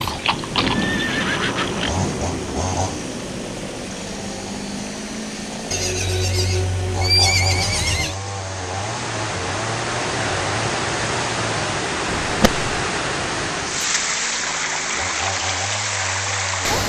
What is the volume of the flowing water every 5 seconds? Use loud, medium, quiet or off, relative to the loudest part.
quiet, medium, loud, loud.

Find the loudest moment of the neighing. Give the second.
7 s.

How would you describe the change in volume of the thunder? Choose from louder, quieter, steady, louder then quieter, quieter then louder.
quieter.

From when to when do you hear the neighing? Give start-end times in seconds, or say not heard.
0.0-1.9, 5.7-8.2, 12.2-12.7.